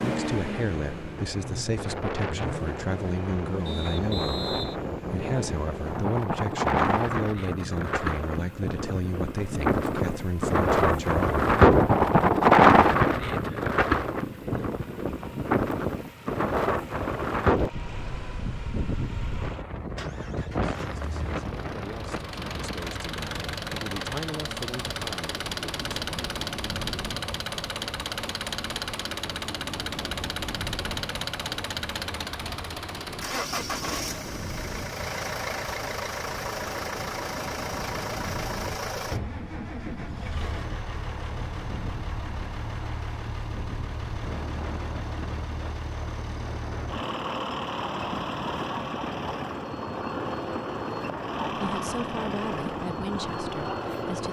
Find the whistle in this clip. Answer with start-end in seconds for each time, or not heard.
3.6-4.8.